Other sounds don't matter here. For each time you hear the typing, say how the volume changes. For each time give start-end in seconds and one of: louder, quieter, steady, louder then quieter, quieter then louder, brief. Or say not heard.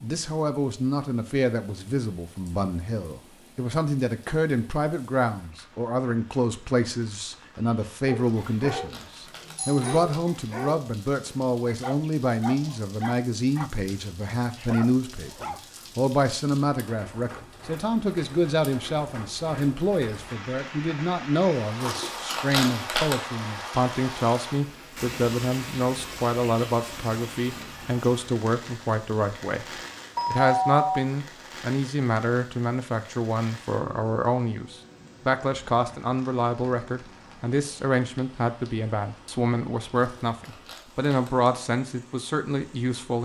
not heard.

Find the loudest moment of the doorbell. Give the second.
31 s.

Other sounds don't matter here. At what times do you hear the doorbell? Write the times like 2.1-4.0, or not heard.
9.6-10.1, 30.1-31.0.